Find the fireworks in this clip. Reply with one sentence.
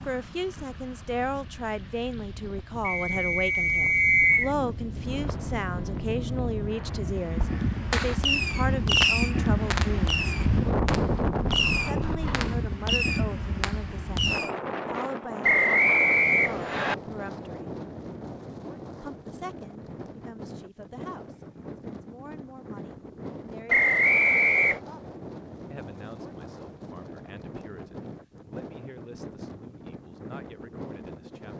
The fireworks can be heard from 5.0 to 14.5 s.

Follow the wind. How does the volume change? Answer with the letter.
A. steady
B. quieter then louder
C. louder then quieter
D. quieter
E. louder
C.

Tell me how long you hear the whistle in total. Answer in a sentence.
You can hear the whistle for 4 seconds altogether.